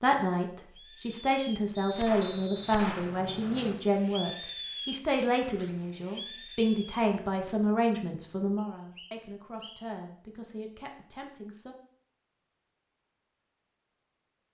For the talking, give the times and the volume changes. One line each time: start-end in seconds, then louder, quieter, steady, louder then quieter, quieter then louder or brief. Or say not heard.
0.0-11.8 quieter.